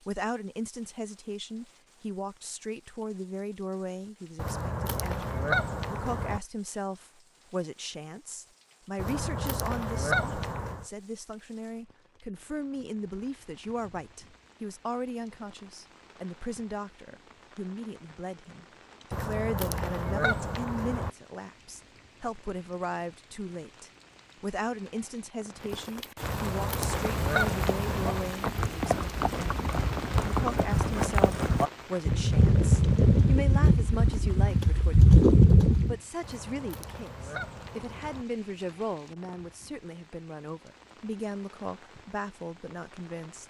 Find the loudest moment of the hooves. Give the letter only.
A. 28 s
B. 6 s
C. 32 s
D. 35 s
D.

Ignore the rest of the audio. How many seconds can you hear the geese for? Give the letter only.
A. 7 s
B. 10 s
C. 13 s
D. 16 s
B.